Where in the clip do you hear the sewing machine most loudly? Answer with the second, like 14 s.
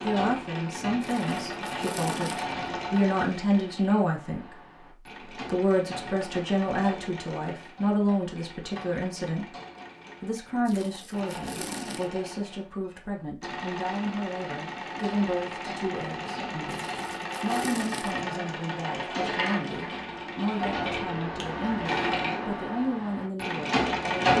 24 s.